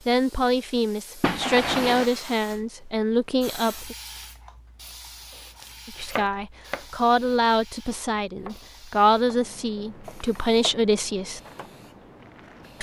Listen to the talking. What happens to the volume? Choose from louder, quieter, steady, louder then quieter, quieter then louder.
steady.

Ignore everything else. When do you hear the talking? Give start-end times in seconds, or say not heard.
0.1-4.0, 5.8-11.4.